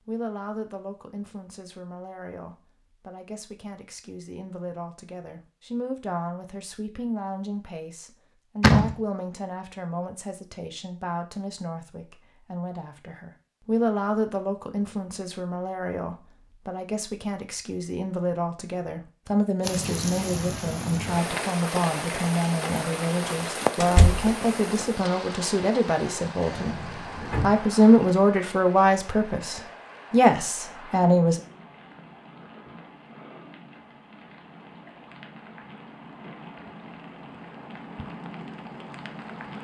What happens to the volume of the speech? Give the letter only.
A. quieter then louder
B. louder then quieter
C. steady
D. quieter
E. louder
E.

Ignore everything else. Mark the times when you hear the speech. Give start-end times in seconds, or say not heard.
0.1-31.4.